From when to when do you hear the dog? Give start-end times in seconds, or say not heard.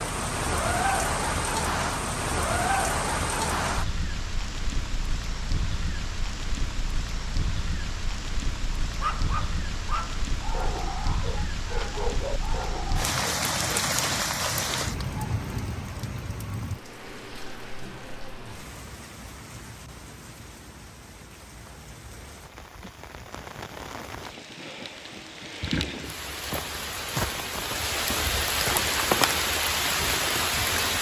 8.8-13.8.